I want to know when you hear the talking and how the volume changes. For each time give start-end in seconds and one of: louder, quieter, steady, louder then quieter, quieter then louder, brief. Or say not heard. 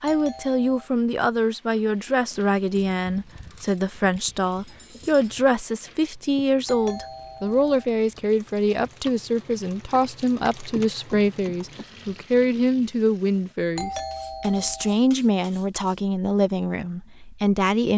0.0-17.9 steady.